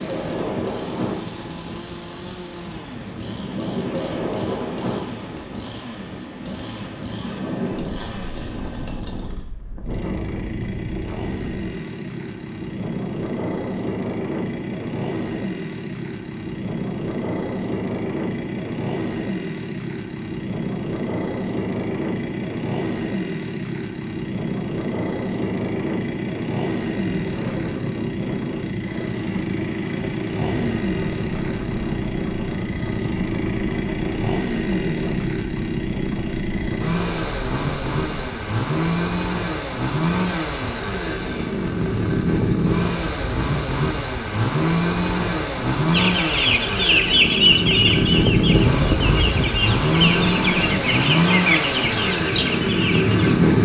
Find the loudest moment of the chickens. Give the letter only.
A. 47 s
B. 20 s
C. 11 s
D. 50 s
A.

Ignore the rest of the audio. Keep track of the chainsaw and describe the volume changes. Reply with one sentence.
The loudness of the chainsaw goes up.